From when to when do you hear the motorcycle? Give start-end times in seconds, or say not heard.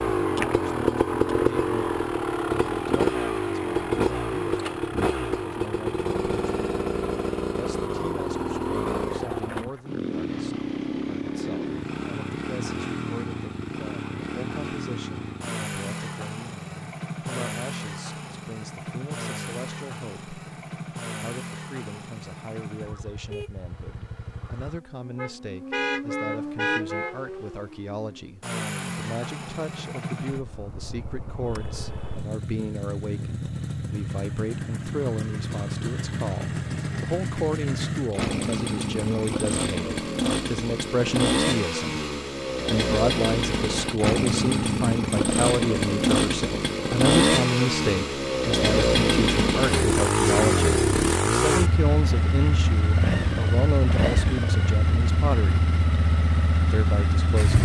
0.0-57.5.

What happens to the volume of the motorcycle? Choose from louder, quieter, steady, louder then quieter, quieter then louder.
quieter then louder.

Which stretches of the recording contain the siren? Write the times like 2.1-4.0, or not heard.
not heard.